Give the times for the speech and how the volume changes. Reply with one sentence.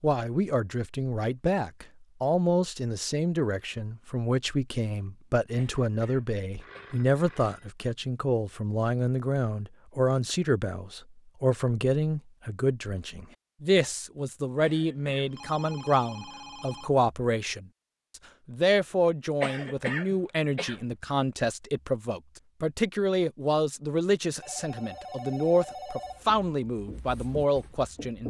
You can hear the speech from 0.0 to 28.2 s, at a steady volume.